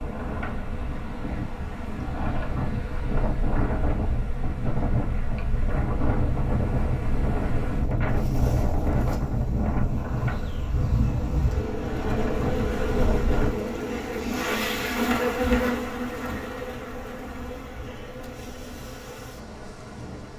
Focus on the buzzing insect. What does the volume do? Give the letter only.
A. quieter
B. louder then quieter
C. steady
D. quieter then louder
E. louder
B.